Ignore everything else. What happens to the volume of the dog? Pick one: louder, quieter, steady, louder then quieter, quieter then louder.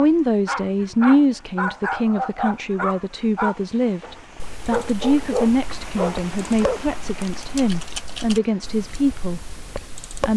steady.